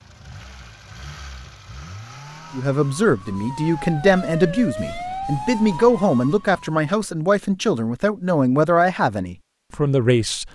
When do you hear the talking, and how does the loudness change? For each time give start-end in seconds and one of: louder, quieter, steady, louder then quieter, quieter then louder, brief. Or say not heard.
2.5-10.5 steady.